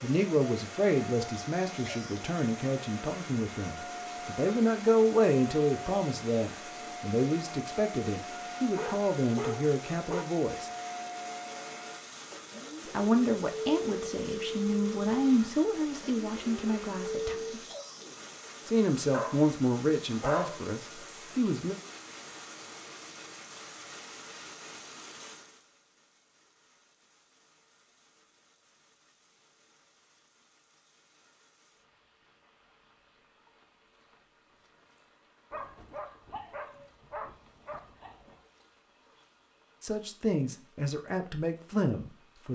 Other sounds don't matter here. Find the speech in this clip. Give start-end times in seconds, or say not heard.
0.0-10.7, 12.9-17.6, 18.6-21.8, 39.8-42.5.